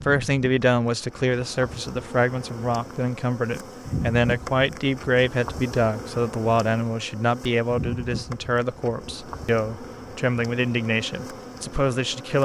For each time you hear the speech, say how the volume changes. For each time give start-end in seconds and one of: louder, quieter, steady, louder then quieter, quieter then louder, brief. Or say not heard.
0.0-12.4 steady.